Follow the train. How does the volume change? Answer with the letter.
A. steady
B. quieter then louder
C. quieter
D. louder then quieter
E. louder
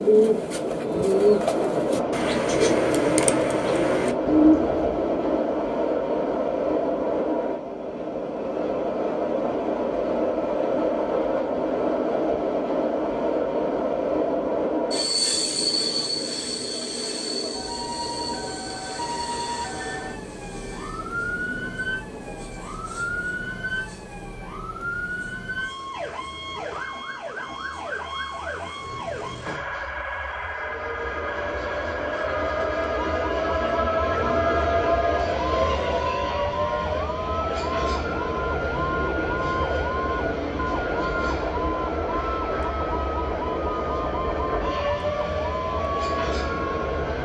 B.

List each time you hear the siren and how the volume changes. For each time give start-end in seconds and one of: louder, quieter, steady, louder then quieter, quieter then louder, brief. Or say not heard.
17.5-47.2 steady.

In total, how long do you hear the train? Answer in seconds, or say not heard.
47 s.